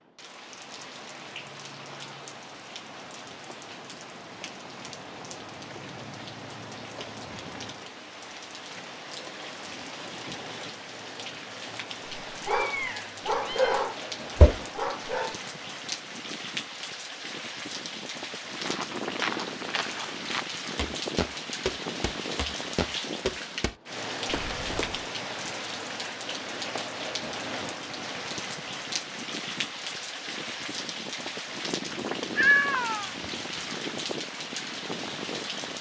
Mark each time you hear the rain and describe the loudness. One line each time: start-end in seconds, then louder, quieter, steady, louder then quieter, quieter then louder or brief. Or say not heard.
0.0-35.7 louder.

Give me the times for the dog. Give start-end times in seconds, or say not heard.
12.3-15.3.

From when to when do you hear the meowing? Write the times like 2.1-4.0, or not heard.
12.4-13.8, 31.9-33.6.